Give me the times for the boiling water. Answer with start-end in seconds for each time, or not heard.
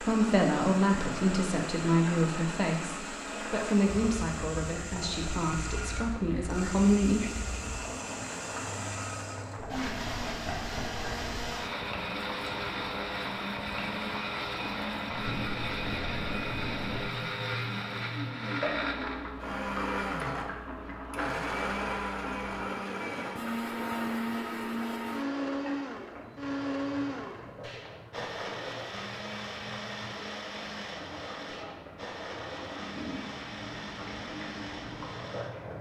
0.0-35.7.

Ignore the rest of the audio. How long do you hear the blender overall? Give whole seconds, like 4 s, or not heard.
36 s.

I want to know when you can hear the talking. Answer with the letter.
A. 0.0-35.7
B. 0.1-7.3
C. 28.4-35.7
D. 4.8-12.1
B.